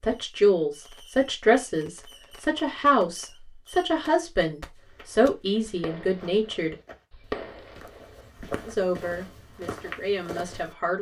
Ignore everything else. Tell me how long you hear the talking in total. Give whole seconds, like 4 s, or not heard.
9 s.